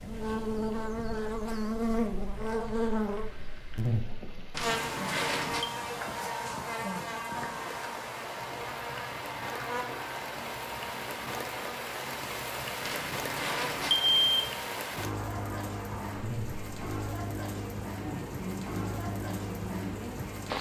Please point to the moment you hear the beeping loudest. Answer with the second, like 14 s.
14 s.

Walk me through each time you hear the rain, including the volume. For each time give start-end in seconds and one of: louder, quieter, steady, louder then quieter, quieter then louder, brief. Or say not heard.
0.0-20.5 louder.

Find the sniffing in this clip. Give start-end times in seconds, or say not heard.
not heard.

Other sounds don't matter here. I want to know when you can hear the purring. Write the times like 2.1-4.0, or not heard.
not heard.